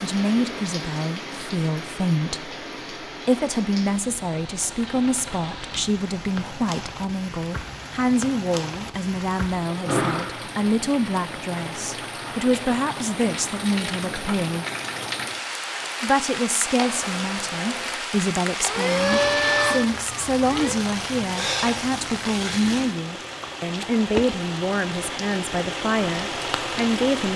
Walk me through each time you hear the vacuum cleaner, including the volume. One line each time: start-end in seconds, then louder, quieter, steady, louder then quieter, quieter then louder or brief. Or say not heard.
16.7-20.9 louder then quieter.